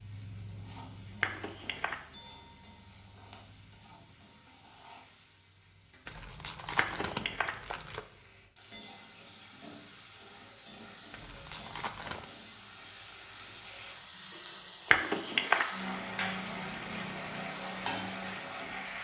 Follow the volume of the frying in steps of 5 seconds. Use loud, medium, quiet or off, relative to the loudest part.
quiet, quiet, medium, loud.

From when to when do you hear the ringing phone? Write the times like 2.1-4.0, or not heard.
1.2-1.9, 6.8-7.5, 14.9-15.7.